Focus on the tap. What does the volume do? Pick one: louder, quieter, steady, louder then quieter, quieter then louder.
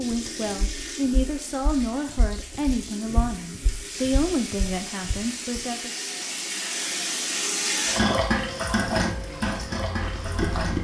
louder.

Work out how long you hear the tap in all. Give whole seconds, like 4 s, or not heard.
11 s.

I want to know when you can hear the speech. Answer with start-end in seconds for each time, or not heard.
0.0-5.9.